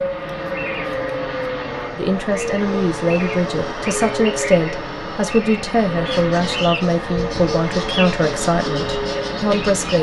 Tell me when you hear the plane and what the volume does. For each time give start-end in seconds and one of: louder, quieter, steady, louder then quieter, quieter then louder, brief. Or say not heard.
0.0-9.9 steady.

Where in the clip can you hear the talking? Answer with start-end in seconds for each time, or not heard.
1.9-9.9.